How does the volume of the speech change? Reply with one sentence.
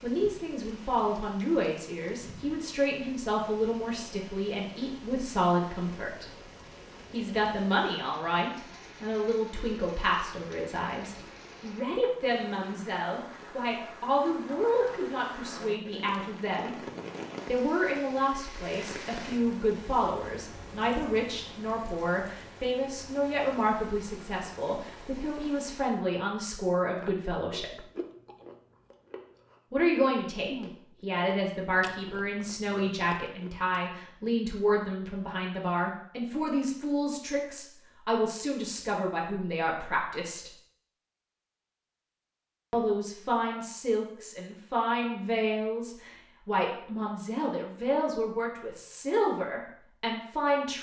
The loudness of the speech stays about the same.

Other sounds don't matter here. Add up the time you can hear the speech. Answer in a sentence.
The speech can be heard for 45 seconds in total.